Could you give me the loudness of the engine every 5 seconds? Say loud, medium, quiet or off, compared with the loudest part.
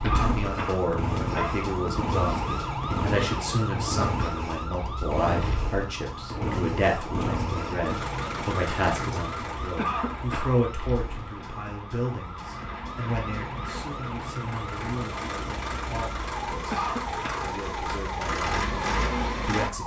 loud, loud, medium, loud.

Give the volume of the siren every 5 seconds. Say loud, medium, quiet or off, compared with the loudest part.
loud, loud, medium, loud.